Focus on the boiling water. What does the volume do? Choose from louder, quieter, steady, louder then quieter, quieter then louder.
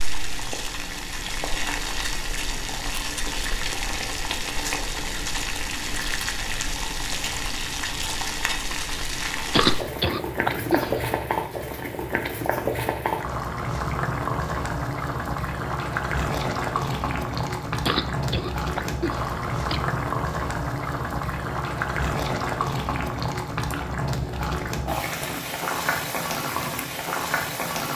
steady.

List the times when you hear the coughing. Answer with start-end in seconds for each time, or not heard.
9.5-11.1, 17.9-19.9.